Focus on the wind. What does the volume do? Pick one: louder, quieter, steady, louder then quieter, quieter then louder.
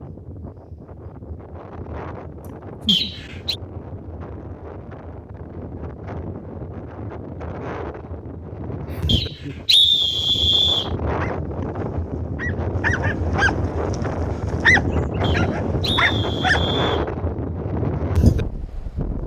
louder.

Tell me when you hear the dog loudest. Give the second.
15 s.